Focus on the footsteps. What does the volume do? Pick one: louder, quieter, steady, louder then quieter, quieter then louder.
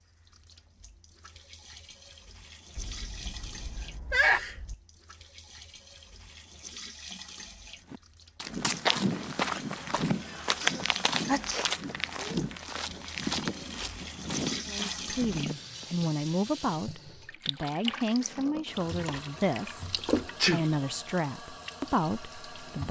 quieter.